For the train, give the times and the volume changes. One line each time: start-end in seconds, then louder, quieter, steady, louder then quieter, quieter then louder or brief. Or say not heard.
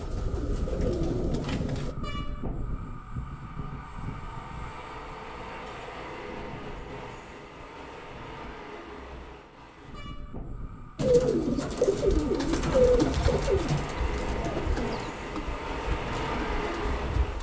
0.0-17.3 quieter then louder.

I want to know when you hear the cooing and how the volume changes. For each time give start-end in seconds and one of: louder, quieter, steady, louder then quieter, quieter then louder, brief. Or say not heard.
0.0-1.9 brief
10.9-17.3 quieter.